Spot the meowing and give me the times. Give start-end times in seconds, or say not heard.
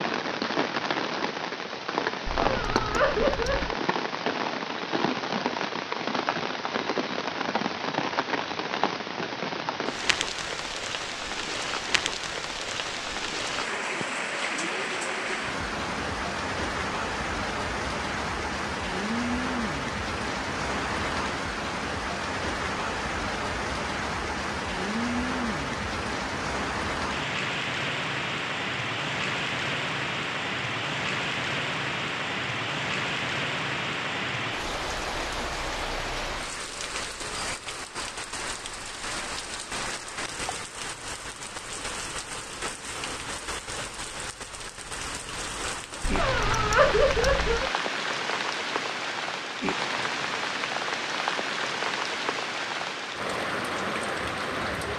2.2-3.8, 46.0-47.7.